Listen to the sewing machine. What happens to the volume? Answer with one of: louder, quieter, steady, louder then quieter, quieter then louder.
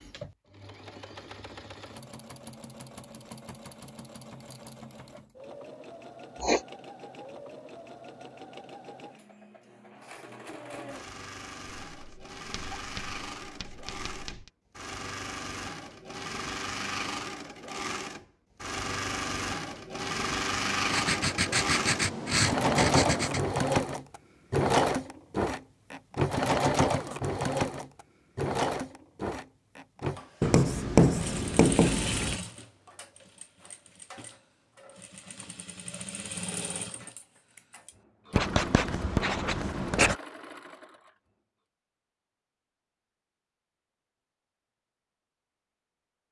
louder then quieter.